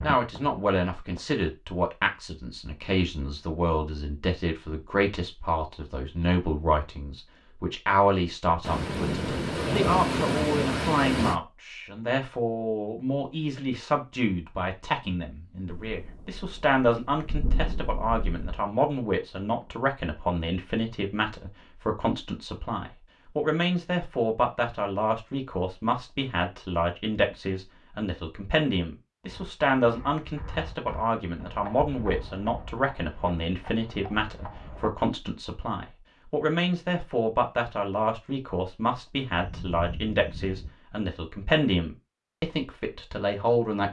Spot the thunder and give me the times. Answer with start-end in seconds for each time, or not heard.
8.6-11.3, 15.7-18.6, 39.3-40.7.